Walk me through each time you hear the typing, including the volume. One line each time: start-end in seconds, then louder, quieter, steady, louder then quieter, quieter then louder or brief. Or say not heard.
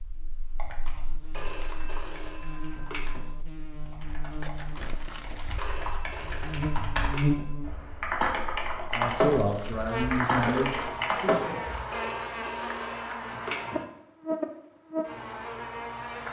0.5-11.9 louder.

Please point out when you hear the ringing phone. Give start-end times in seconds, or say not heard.
1.4-3.3, 5.5-7.5, 11.9-13.9.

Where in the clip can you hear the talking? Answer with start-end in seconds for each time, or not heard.
8.9-11.6.